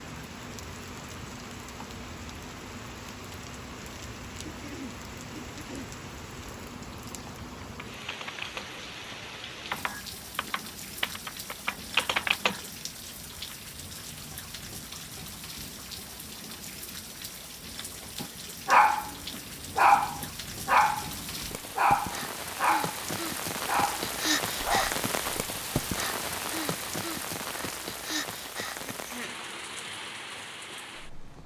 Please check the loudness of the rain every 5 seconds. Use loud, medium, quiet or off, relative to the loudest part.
medium, medium, medium, medium, loud, loud, medium.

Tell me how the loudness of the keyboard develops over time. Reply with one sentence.
The volume of the keyboard goes down, then up.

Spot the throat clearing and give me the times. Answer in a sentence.
You can hear the throat clearing from 4.5 to 5.9 s and from 28.9 to 29.4 s.